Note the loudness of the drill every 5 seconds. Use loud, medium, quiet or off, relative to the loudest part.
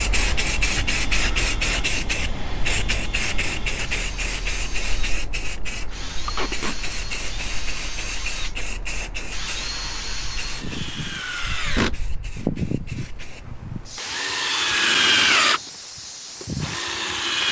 quiet, quiet, medium, loud.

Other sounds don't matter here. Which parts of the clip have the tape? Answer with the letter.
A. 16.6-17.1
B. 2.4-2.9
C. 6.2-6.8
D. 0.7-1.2
C.